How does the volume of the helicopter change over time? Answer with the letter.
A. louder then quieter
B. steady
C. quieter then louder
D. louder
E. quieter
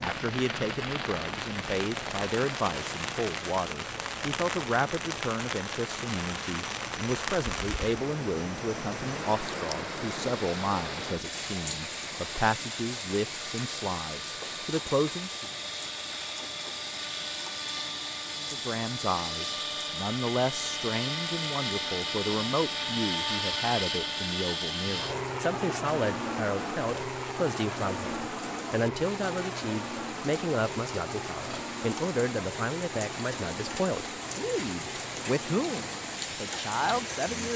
A.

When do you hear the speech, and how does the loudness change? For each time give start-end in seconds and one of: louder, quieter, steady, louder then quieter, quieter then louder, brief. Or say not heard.
0.0-15.5 steady
18.4-37.5 steady.